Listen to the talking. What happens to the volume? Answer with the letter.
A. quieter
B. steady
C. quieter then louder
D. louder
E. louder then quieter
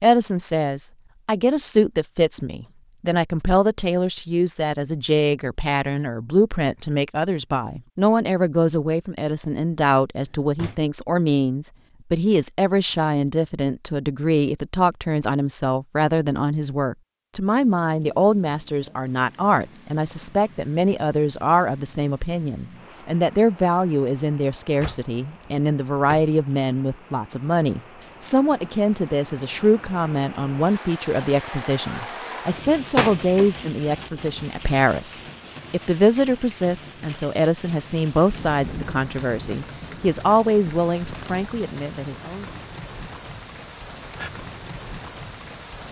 B.